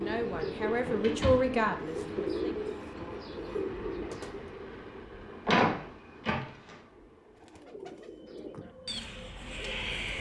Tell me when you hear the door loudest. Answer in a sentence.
The volume of the door peaks at 6 seconds.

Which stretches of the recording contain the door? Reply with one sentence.
You can hear the door from 0.7 to 2.2 s and from 5.5 to 6.8 s.